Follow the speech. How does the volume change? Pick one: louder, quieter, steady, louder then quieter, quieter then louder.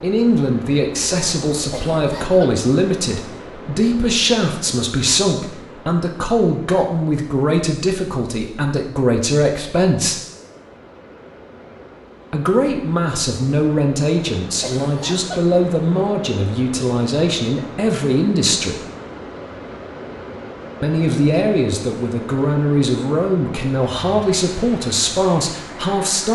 steady.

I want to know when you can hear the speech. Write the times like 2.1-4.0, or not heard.
0.0-10.2, 12.3-18.8, 20.8-26.3.